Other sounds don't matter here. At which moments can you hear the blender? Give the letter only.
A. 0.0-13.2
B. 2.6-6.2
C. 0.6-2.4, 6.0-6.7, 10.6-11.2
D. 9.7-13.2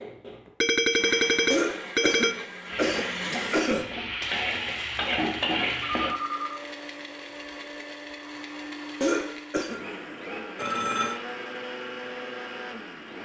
A.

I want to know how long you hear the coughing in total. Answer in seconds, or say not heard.
3 s.